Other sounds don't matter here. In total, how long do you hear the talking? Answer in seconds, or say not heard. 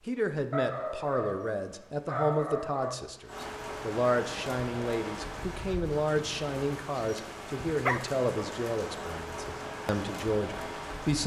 11 s.